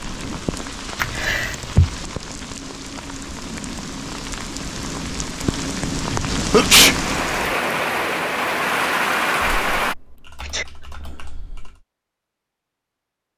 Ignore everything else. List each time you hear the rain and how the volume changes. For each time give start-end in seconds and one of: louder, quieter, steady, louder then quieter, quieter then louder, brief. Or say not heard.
0.0-9.9 louder.